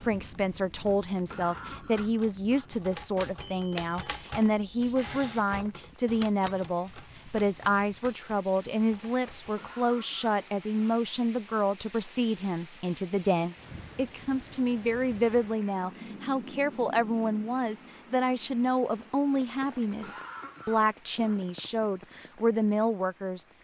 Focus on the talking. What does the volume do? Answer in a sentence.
The loudness of the talking stays about the same.